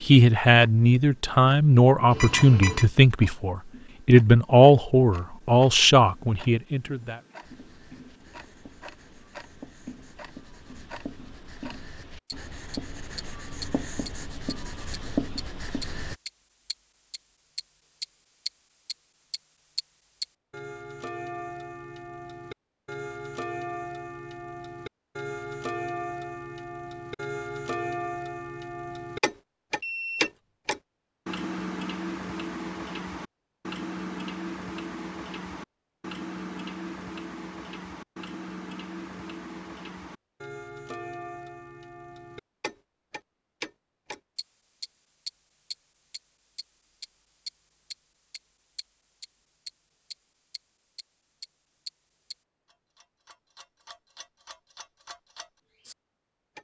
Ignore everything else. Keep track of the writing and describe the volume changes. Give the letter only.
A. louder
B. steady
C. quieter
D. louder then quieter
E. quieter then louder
A.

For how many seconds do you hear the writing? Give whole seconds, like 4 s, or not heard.
9 s.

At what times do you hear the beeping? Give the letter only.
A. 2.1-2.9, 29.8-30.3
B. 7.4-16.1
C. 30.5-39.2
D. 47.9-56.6
A.